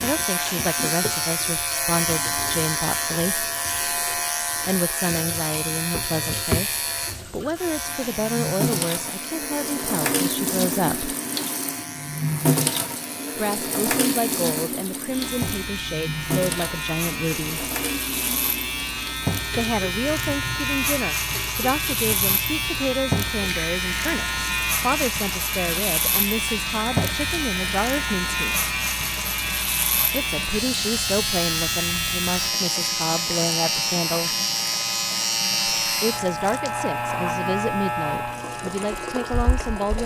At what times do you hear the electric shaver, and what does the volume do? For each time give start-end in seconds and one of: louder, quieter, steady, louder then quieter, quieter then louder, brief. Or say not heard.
0.0-40.0 quieter then louder.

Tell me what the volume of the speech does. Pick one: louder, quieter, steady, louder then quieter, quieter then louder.
steady.